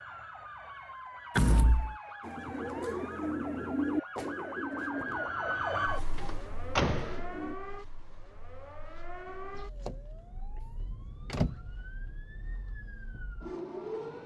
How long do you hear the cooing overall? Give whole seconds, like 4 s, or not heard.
5 s.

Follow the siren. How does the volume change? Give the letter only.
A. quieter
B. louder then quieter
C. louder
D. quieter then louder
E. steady
B.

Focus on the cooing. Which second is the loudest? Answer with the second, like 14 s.
4 s.